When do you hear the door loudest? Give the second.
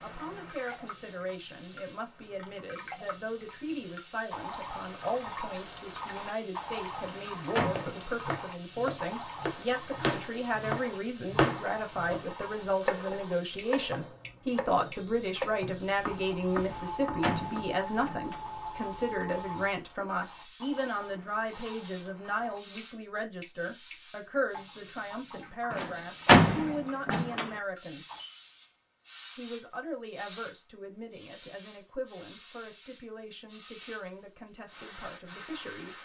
26 s.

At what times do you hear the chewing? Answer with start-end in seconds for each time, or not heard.
not heard.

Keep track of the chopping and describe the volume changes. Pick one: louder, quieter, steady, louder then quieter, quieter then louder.
louder then quieter.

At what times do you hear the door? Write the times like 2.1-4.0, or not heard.
7.0-8.0, 16.6-18.4, 25.7-27.5.